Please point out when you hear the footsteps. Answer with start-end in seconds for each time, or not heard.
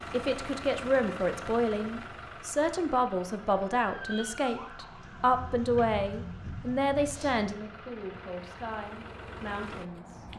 not heard.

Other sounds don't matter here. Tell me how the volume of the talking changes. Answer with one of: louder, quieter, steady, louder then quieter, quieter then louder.
quieter.